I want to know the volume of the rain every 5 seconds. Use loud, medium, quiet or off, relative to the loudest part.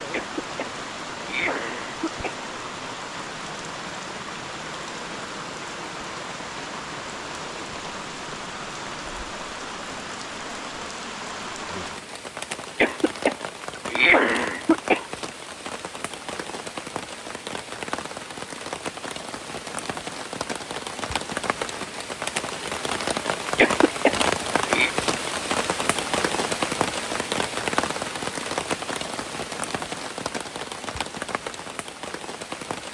medium, medium, medium, medium, loud, loud, medium.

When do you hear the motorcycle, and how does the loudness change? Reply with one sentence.
The motorcycle can't be heard in this clip.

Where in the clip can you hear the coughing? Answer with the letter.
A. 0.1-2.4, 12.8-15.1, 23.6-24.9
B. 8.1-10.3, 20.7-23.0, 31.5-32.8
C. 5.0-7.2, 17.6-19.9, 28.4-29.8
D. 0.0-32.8
A.